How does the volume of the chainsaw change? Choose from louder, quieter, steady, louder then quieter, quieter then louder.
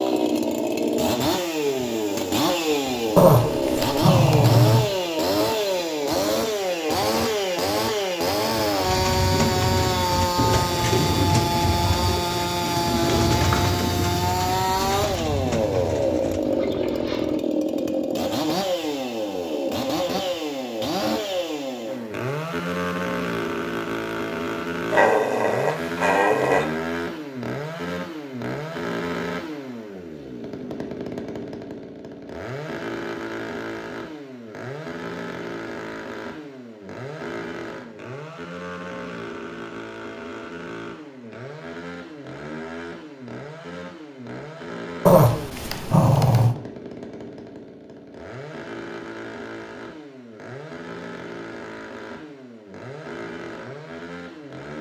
quieter.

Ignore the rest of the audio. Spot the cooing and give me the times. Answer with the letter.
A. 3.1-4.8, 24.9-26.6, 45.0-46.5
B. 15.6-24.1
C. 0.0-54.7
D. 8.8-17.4
D.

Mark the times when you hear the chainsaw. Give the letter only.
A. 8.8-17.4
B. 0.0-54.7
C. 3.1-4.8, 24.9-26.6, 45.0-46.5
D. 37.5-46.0
B.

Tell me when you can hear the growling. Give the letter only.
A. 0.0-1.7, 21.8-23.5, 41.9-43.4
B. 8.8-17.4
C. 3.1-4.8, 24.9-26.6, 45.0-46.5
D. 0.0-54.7
C.